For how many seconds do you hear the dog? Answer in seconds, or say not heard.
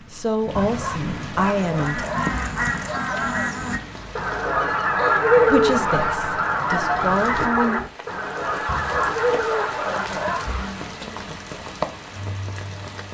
4 s.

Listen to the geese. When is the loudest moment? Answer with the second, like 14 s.
5 s.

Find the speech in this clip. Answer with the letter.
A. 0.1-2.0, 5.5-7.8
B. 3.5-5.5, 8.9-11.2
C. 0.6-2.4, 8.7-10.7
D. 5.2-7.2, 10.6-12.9
A.